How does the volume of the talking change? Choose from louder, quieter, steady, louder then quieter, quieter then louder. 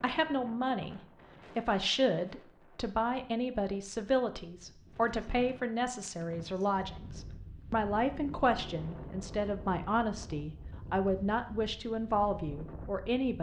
steady.